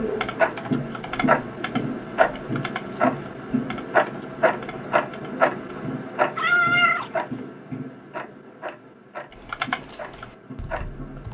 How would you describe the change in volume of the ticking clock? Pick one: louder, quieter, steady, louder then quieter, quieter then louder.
quieter.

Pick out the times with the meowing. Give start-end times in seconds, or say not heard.
6.3-7.1.